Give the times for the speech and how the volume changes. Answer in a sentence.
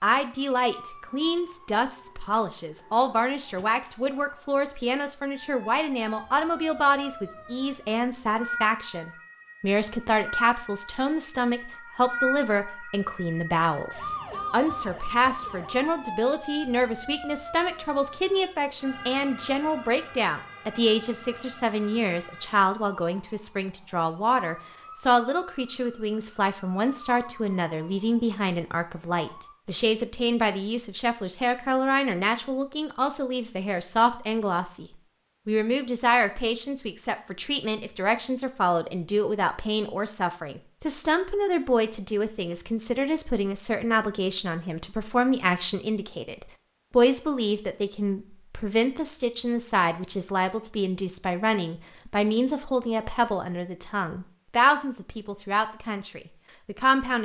You can hear the speech from 0.0 to 34.9 s, at a steady volume; and from 35.5 to 57.1 s, at a steady volume.